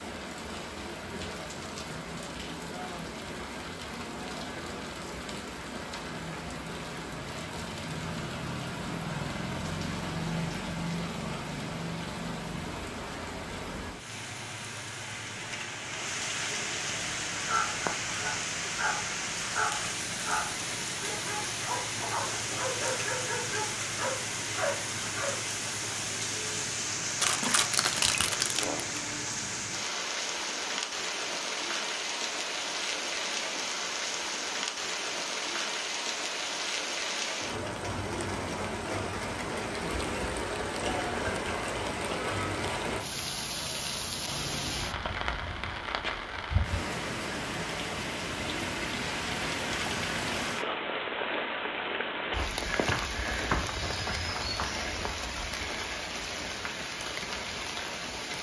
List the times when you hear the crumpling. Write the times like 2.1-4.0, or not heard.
27.2-28.8.